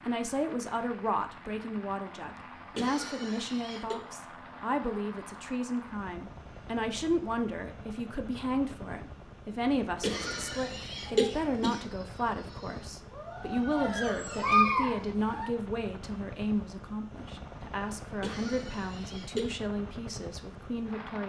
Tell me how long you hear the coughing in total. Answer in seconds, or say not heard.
4 s.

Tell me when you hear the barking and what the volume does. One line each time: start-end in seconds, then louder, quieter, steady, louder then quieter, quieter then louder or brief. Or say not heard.
11.1-15.5 louder.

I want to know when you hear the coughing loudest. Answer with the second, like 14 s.
11 s.